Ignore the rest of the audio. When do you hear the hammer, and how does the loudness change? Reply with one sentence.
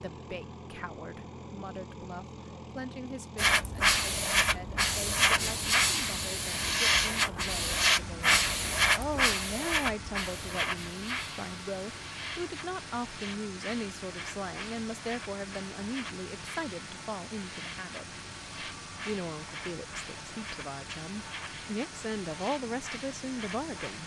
You can't hear the hammer here.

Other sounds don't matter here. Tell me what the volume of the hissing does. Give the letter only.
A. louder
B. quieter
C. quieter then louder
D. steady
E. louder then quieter
B.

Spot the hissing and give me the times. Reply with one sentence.
You can hear the hissing from 3.4 to 24.0 s.